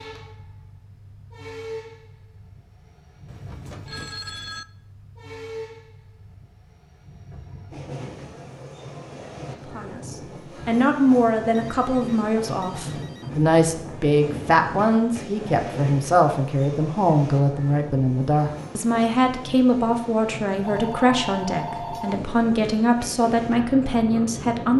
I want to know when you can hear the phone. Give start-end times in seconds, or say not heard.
3.2-4.7, 11.6-13.3, 20.6-22.2.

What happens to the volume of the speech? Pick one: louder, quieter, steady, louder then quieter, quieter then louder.
steady.